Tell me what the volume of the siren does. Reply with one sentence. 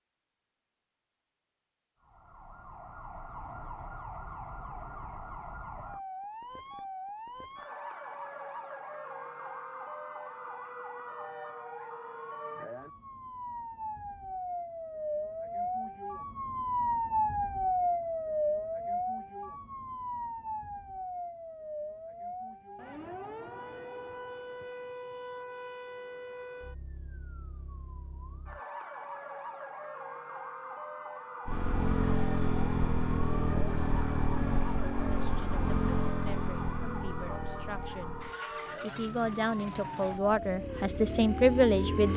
The loudness of the siren goes up, then down.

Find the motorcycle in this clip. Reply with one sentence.
You can hear the motorcycle from 31.4 to 42.1 s.